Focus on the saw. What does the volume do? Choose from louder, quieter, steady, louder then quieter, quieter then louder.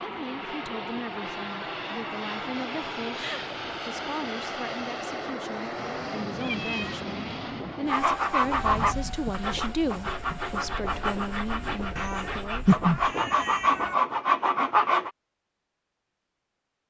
quieter then louder.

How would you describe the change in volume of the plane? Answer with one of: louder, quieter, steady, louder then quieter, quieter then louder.
quieter.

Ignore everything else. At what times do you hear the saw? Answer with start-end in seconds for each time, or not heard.
7.8-15.1.